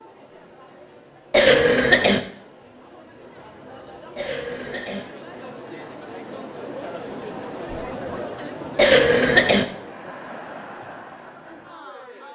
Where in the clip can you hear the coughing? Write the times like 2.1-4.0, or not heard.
1.3-2.2, 4.2-5.0, 8.8-9.7.